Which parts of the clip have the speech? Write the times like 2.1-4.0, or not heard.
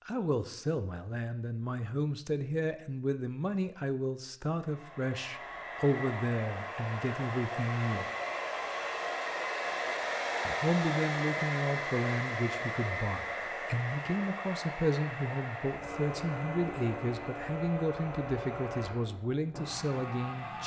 0.1-8.1, 10.4-20.6.